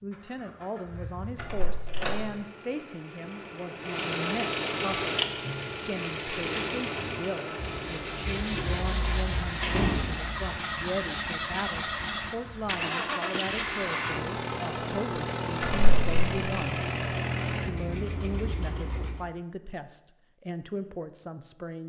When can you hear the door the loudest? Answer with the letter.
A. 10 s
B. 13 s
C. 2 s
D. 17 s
A.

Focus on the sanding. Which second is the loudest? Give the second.
9 s.